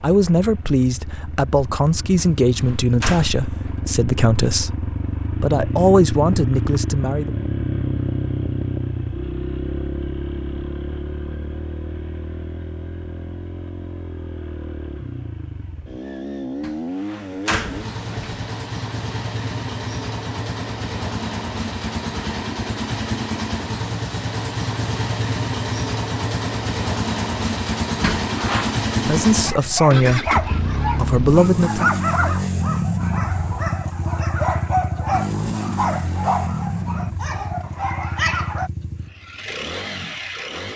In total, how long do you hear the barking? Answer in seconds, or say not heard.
9 s.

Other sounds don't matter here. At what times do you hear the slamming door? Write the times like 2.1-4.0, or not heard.
2.1-3.8, 16.6-18.5, 28.0-28.8.